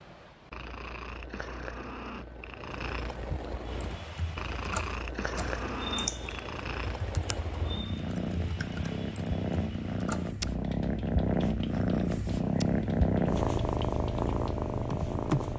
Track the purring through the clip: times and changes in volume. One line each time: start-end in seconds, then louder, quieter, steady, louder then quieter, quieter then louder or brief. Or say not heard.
0.0-15.5 louder.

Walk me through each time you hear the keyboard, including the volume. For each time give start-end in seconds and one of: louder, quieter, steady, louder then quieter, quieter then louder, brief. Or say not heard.
3.6-15.5 quieter then louder.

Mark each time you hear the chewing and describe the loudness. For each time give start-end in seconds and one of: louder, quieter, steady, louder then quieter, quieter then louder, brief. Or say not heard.
not heard.